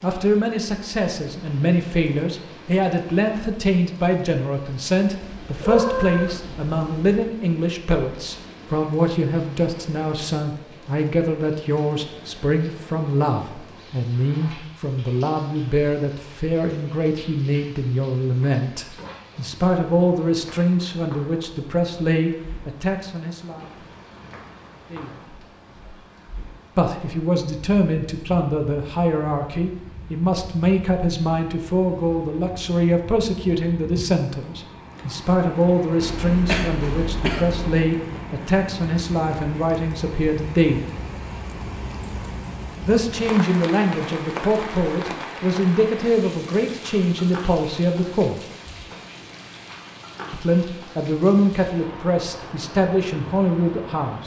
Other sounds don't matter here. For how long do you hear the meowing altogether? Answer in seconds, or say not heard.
2 s.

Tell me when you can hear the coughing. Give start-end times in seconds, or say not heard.
36.0-37.9.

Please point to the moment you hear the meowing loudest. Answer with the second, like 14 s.
6 s.